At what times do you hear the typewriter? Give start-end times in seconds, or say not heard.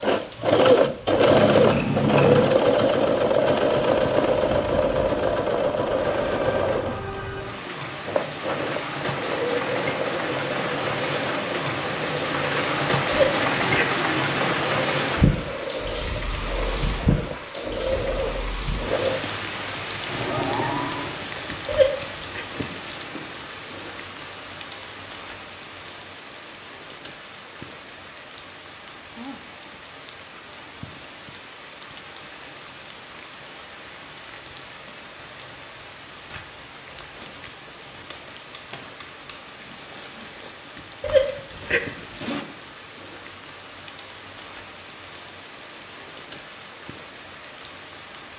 not heard.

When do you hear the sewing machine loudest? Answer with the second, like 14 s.
1 s.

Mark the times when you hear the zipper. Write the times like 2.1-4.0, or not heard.
13.1-13.9, 21.6-22.4, 41.0-42.5.